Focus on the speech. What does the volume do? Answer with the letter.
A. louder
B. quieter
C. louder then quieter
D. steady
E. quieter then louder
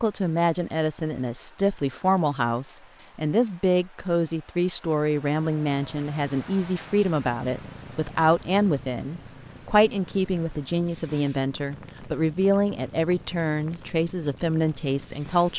D.